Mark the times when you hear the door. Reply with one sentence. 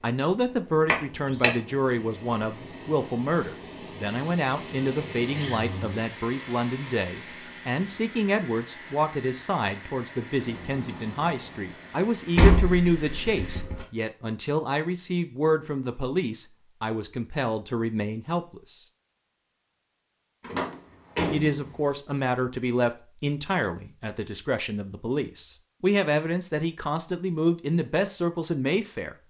You can hear the door from 0.8 to 1.5 s, from 12.3 to 13.8 s and from 20.4 to 21.8 s.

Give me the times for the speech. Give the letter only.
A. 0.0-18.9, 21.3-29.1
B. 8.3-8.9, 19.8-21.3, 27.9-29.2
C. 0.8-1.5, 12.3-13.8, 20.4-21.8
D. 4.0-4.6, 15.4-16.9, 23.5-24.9
A.